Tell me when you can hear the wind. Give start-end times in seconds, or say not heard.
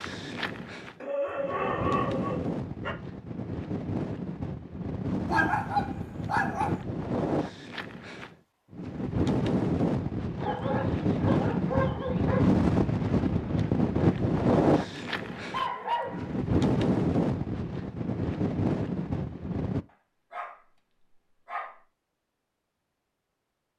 0.0-19.9.